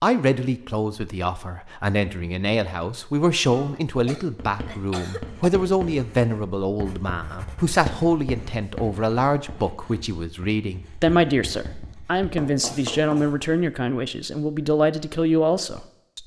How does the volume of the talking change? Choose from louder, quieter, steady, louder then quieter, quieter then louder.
steady.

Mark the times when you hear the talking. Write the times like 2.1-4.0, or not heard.
0.0-16.2.